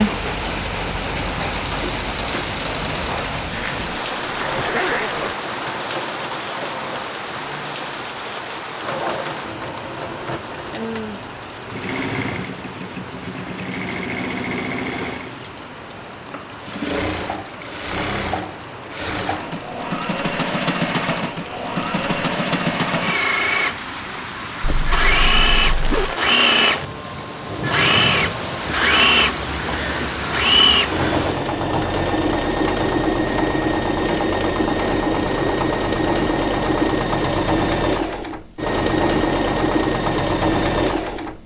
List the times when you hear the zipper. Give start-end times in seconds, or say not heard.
3.5-5.3, 24.6-26.1.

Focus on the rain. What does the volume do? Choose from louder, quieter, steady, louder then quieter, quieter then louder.
quieter then louder.